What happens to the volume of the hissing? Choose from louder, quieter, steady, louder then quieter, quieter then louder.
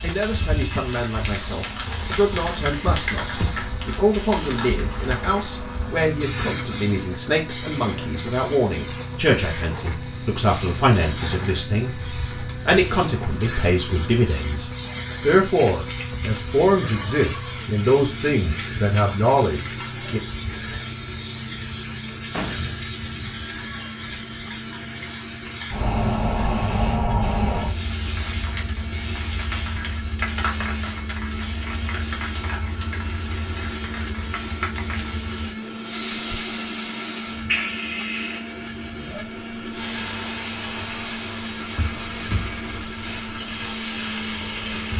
steady.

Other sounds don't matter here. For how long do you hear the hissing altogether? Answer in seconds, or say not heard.
45 s.